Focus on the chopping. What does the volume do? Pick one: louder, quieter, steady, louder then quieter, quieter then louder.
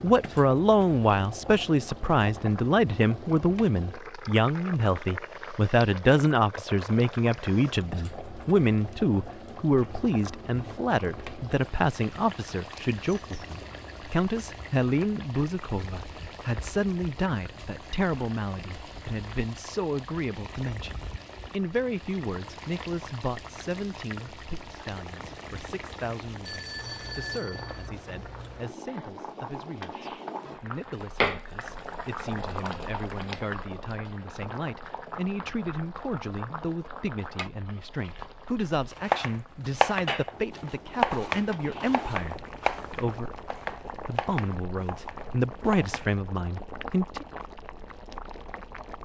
quieter.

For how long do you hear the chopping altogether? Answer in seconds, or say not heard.
7 s.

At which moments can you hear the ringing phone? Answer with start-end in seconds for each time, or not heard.
26.4-27.9.